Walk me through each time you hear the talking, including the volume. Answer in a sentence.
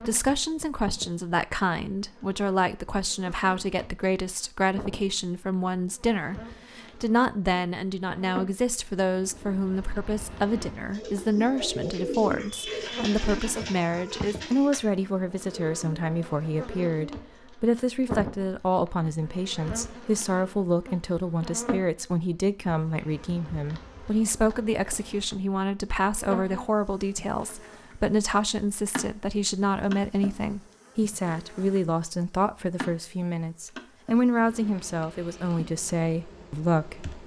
The talking can be heard from 0.1 to 37.2 s, at a steady volume.